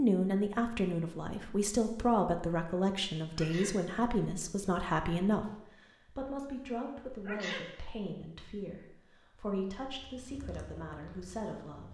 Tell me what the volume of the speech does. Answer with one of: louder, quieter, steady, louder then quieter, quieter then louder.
quieter.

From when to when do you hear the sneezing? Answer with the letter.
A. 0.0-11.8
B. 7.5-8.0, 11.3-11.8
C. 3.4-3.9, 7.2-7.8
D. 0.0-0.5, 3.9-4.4
C.